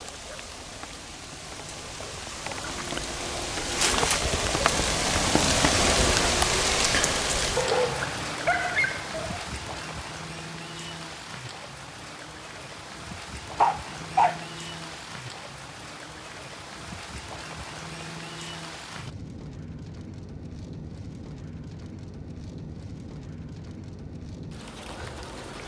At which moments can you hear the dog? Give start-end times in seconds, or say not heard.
7.5-9.4, 13.6-14.4.